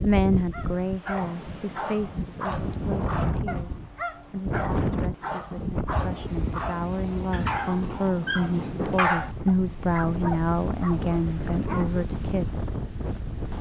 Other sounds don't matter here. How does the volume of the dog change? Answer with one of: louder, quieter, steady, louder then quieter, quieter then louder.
louder then quieter.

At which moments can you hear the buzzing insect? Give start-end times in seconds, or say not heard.
not heard.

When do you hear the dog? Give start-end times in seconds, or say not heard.
0.5-12.1.